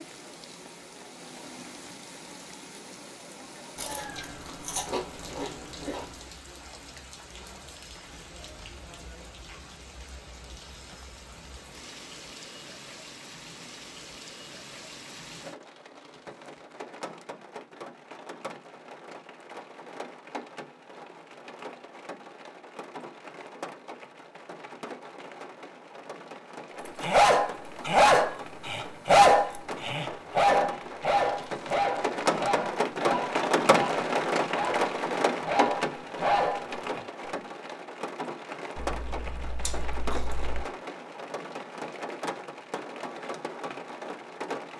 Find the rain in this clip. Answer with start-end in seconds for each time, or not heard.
0.0-44.7.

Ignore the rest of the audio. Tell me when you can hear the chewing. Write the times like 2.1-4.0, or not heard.
3.8-6.2, 38.8-40.6.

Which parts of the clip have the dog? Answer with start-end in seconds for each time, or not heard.
26.9-37.3.